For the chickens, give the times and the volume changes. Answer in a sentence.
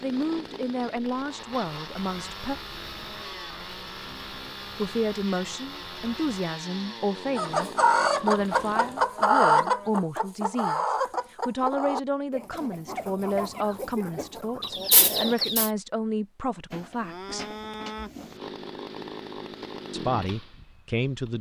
You can hear the chickens from 7.3 to 15.7 s, getting quieter then louder.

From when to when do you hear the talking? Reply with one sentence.
The talking can be heard from 0.0 to 2.5 s, from 4.8 to 17.4 s and from 19.9 to 21.3 s.